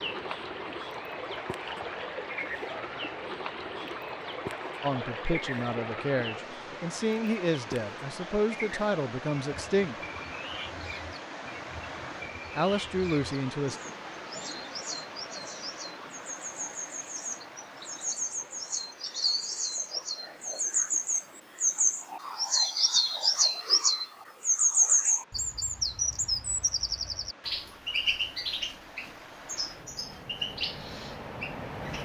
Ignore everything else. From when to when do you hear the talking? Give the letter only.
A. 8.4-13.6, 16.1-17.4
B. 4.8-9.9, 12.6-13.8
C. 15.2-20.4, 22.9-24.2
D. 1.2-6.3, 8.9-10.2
B.